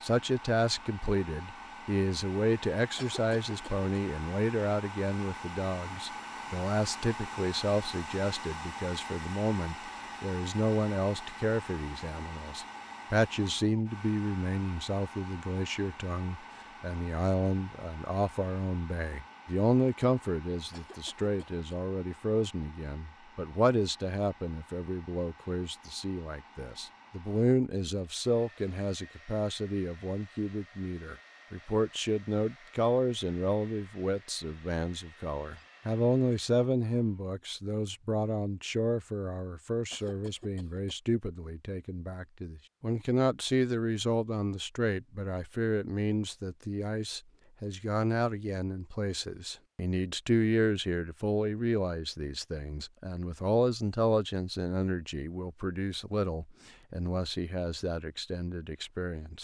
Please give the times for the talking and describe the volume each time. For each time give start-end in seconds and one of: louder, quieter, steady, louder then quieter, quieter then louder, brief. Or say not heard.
0.0-59.3 steady.